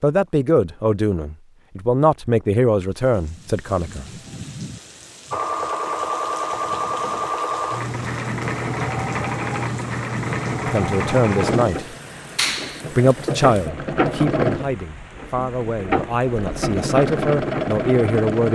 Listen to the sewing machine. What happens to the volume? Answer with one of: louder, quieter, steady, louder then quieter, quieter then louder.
steady.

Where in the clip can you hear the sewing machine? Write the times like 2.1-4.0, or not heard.
5.3-18.5.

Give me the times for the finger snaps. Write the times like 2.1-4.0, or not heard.
12.3-12.8.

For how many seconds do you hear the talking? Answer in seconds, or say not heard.
11 s.